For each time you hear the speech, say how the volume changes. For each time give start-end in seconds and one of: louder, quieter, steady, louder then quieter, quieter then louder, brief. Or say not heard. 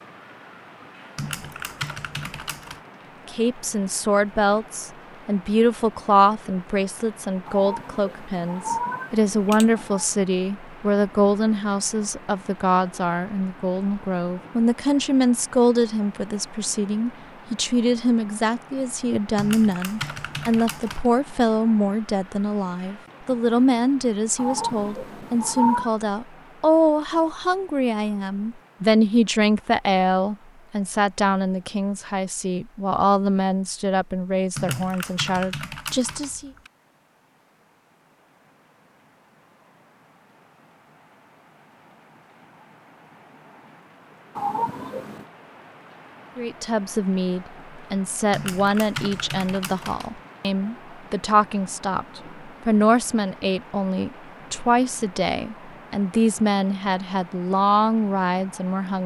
3.2-36.5 steady
46.4-59.0 steady.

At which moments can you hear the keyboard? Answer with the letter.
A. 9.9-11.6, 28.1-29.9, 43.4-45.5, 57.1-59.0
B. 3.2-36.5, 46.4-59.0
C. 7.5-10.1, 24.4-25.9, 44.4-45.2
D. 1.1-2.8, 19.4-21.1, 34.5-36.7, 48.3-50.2
D.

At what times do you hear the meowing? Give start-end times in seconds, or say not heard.
7.5-10.1, 24.4-25.9, 44.4-45.2.